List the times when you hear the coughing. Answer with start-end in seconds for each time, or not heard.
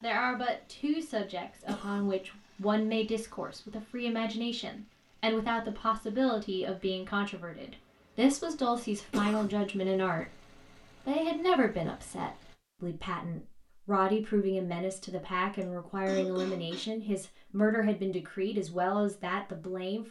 1.6-2.1, 9.1-9.6, 15.6-16.9.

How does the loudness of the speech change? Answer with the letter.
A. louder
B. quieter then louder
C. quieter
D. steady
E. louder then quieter
D.